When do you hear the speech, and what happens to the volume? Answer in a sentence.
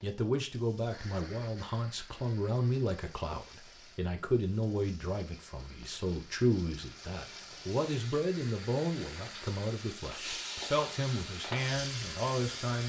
The speech can be heard from 0.0 to 12.8 s, at a steady volume.